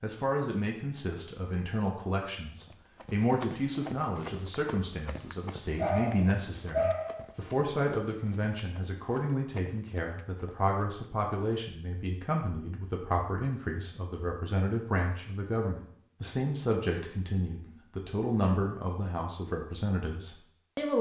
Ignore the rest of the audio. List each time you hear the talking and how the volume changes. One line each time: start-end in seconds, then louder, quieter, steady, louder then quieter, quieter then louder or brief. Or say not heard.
0.0-20.9 steady.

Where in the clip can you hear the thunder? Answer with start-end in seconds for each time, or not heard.
not heard.